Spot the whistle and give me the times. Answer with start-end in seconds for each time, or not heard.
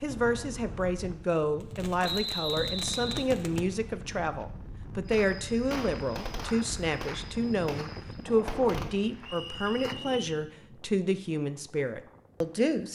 2.0-3.2, 9.2-10.4.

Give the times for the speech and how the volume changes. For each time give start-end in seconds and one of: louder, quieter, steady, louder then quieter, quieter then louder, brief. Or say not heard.
0.0-12.9 steady.